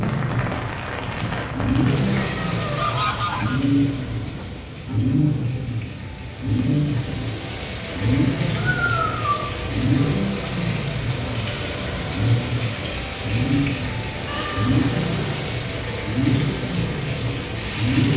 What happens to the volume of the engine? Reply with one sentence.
The volume of the engine stays about the same.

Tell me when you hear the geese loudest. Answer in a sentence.
The volume of the geese peaks at 3 seconds.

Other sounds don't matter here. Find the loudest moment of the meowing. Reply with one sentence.
The volume of the meowing peaks at 9 seconds.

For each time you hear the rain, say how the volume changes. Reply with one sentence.
You can hear the rain from 0.0 to 18.1 s, getting quieter then louder.